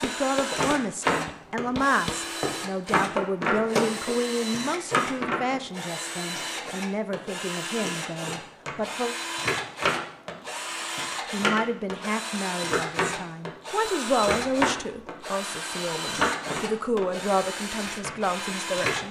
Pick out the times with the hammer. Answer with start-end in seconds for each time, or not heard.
0.0-2.2.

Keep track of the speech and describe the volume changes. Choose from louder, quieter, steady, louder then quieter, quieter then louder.
steady.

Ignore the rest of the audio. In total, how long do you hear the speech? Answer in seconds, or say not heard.
17 s.